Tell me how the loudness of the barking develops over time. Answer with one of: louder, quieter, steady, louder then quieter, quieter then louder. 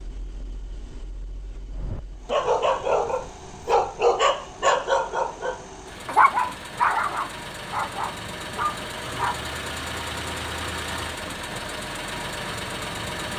quieter.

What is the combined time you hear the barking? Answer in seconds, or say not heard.
8 s.